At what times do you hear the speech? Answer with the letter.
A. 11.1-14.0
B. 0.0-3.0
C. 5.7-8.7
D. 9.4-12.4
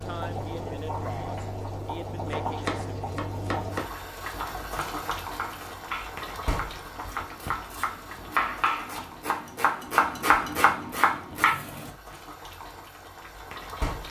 B.